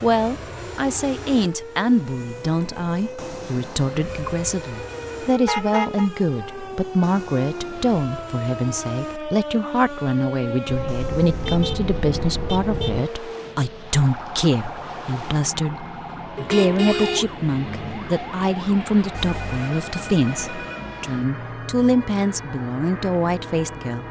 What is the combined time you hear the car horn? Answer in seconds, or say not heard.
5 s.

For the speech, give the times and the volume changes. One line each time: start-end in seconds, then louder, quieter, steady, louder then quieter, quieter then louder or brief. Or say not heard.
0.0-24.0 steady.